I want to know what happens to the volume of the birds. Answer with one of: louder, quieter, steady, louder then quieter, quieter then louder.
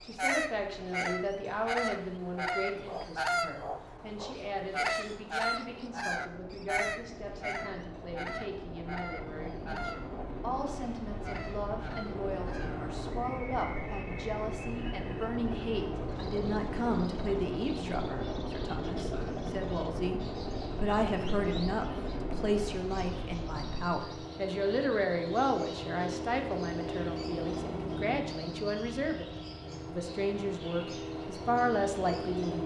quieter.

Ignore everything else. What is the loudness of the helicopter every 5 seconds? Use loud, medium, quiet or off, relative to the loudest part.
quiet, medium, loud, loud, loud, loud, loud.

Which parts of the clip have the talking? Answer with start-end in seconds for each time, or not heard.
0.0-32.6.